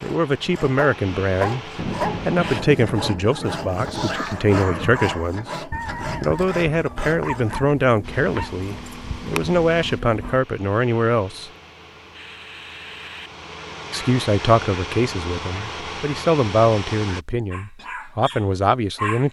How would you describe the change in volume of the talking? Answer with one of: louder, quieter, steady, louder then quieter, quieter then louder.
steady.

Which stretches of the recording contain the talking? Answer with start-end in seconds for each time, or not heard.
0.0-11.5, 13.9-19.2.